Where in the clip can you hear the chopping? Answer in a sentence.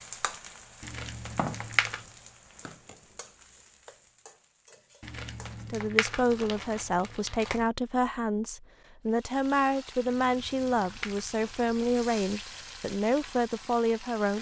The chopping can't be heard in this clip.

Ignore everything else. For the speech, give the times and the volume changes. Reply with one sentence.
The speech can be heard from 5.7 to 14.3 s, at a steady volume.